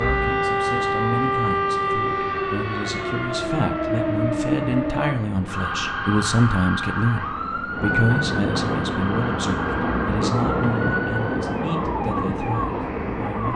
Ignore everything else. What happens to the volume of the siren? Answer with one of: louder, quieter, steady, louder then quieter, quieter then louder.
quieter.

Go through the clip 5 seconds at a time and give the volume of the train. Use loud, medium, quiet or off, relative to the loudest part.
quiet, loud, loud.